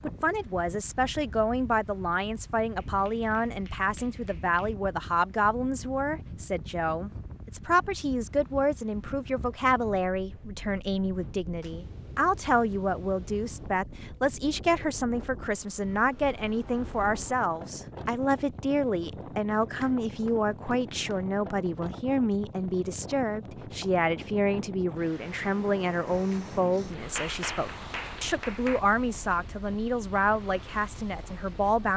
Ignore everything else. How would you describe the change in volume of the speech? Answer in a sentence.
The loudness of the speech stays about the same.